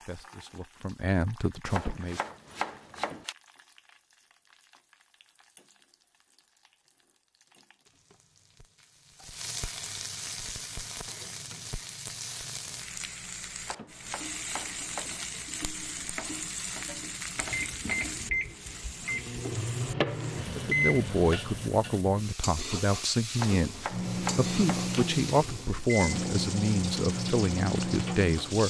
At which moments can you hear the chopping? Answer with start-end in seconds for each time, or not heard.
1.7-3.4, 13.6-15.3, 23.4-24.9.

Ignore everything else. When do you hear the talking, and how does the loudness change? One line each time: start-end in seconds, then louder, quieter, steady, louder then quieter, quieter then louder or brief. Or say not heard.
0.0-2.2 brief
20.6-28.6 steady.